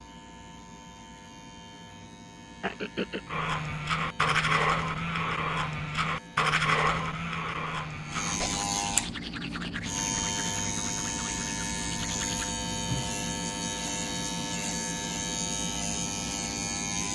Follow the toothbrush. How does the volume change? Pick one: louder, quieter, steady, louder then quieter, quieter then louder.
quieter.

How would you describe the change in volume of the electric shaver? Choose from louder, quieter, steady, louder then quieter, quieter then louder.
louder.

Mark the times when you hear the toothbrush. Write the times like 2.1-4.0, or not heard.
3.3-12.6.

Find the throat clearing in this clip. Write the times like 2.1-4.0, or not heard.
2.6-3.2.